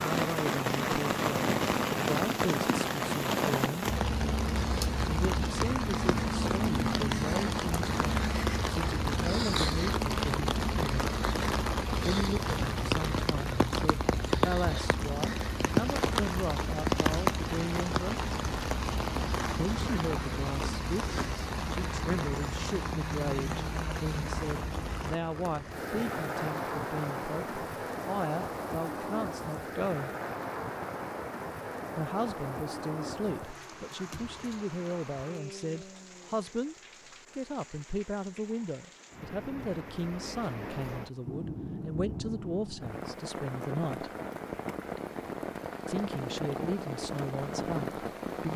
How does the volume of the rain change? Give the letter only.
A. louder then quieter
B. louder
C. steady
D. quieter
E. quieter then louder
D.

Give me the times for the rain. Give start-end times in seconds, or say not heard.
0.0-48.5.